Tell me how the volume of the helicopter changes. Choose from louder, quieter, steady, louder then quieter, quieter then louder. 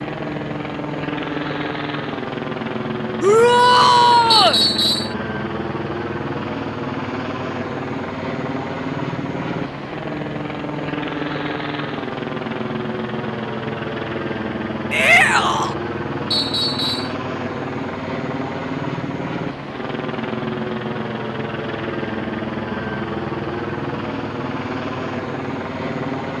steady.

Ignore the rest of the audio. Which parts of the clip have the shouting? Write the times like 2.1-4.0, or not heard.
3.2-4.6, 14.9-15.8.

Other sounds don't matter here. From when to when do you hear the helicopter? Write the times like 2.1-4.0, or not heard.
0.0-26.3.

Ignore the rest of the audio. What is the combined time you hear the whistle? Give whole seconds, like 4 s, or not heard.
2 s.